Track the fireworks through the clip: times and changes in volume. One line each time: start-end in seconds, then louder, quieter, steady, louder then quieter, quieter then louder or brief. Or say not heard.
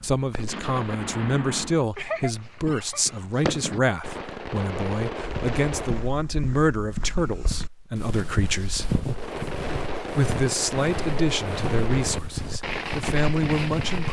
0.0-6.1 steady
9.1-14.0 steady.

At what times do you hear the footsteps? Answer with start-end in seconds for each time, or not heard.
5.2-14.0.